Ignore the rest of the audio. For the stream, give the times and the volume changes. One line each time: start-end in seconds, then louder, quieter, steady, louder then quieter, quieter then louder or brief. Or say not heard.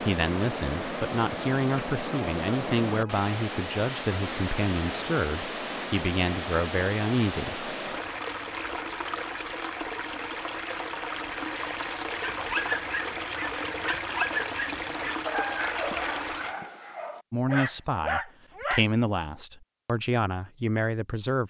0.0-16.6 steady.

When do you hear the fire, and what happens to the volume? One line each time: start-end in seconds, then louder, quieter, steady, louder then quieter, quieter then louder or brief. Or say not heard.
not heard.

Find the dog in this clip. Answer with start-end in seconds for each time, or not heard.
12.2-18.9.